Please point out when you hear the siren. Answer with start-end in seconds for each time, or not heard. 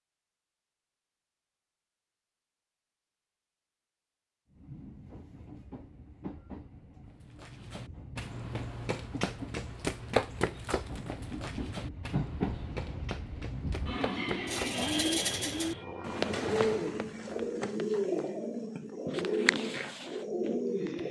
not heard.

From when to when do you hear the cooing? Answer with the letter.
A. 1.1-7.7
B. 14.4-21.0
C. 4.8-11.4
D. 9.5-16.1
B.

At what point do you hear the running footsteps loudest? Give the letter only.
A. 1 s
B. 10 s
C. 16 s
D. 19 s
B.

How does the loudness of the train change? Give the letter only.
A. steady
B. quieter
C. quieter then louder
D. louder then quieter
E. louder
E.